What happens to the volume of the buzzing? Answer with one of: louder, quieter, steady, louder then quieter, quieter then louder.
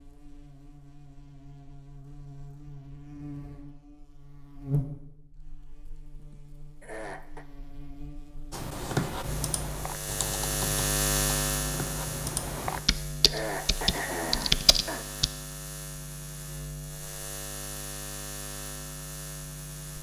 louder then quieter.